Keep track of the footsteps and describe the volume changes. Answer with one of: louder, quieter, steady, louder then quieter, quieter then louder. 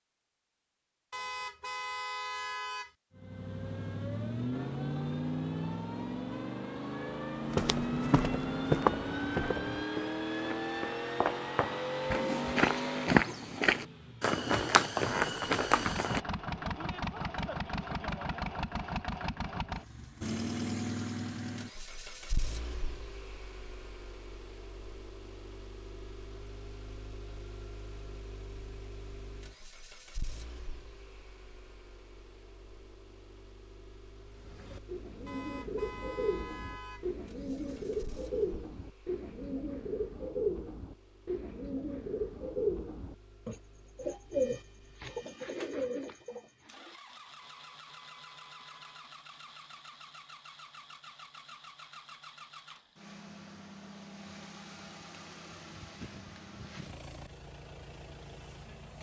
quieter then louder.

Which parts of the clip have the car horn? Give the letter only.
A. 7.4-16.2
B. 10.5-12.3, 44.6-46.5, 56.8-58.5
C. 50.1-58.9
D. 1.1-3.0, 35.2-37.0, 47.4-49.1
D.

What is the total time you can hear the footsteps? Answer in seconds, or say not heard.
9 s.